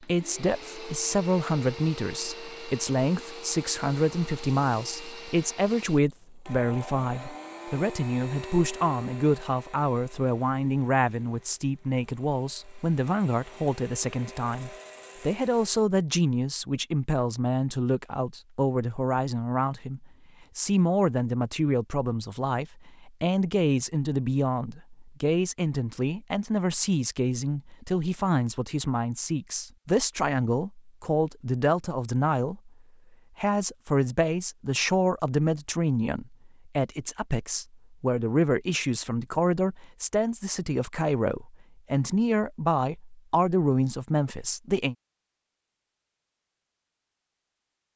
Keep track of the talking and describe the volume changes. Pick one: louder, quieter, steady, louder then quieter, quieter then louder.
steady.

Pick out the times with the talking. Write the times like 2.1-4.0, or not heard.
0.0-32.7, 33.4-45.0.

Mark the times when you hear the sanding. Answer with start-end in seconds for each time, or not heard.
not heard.